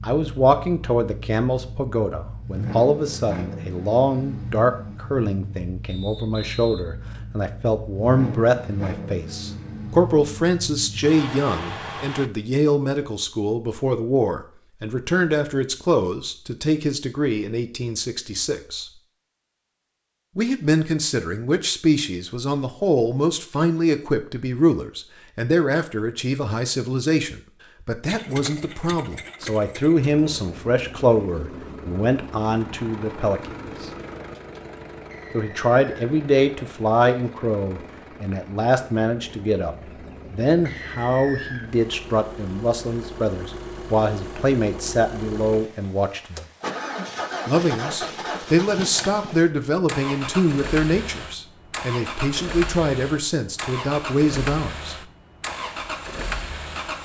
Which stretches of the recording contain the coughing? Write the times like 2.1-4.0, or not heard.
not heard.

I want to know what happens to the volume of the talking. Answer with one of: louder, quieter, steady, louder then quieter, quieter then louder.
steady.